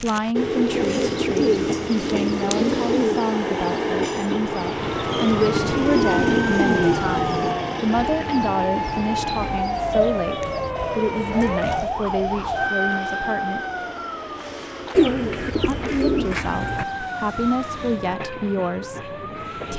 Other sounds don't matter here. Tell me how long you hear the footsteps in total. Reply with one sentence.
The footsteps can't be heard in this clip.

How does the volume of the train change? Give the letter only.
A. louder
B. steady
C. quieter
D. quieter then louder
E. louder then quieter
C.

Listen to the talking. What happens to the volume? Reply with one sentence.
The volume of the talking stays about the same.